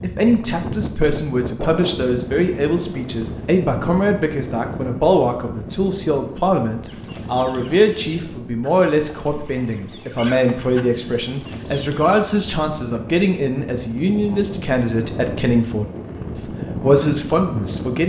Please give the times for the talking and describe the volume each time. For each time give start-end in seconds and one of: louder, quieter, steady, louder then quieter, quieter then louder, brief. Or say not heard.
0.0-18.0 steady.